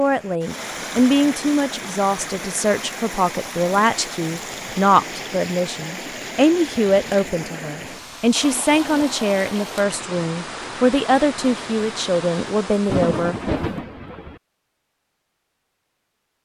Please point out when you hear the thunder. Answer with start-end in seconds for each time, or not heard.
12.8-14.4.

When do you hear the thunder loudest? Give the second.
13 s.